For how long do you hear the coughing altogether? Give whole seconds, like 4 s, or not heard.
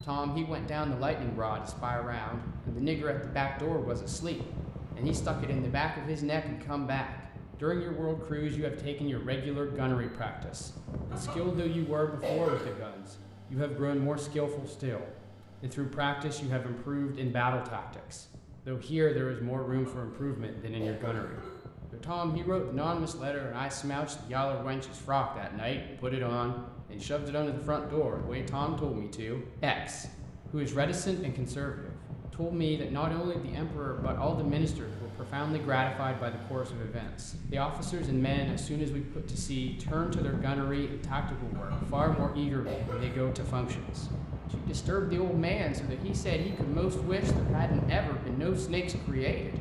5 s.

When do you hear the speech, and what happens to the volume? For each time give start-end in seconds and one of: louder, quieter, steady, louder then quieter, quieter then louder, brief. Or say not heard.
0.0-49.5 steady.